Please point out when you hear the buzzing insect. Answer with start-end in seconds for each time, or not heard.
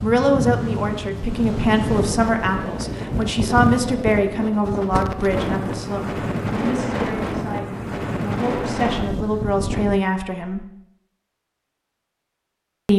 not heard.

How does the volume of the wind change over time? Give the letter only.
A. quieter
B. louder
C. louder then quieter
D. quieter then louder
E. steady
E.